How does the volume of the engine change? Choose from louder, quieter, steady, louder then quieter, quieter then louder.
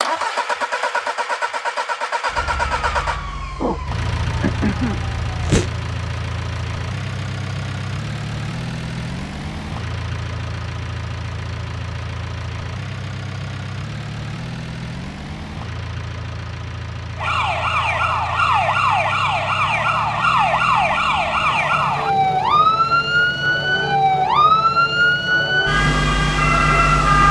quieter.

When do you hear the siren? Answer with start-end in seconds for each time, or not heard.
2.2-5.8, 17.1-27.2.